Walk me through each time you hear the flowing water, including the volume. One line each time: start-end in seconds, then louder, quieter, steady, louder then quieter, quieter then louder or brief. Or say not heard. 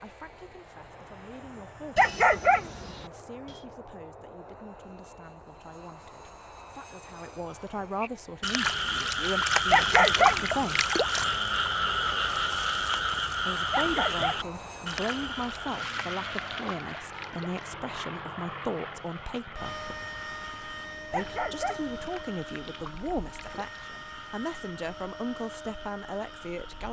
not heard.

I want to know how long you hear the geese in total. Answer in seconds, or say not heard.
not heard.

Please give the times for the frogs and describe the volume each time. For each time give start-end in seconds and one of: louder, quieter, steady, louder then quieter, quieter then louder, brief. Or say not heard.
8.0-26.8 quieter.